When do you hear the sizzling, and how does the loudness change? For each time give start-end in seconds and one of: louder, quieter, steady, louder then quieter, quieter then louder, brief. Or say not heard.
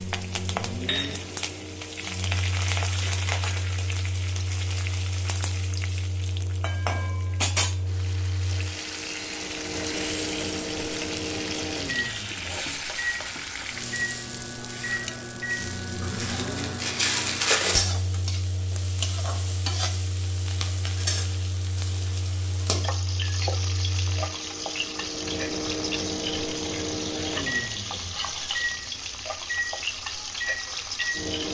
0.0-31.4 steady.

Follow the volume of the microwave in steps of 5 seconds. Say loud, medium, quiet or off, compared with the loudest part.
medium, medium, loud, medium, medium, loud, loud.